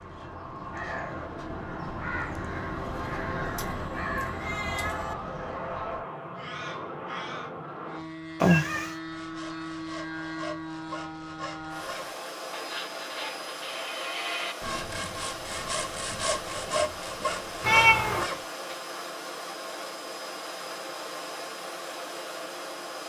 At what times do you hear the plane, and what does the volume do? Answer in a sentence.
The plane can be heard from 0.0 to 23.0 s, at a steady volume.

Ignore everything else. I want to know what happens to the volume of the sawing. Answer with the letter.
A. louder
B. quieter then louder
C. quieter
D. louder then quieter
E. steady
A.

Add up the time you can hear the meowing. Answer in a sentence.
You can hear the meowing for 3 seconds altogether.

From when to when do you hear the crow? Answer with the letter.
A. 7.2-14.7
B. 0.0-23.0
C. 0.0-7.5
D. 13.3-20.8
C.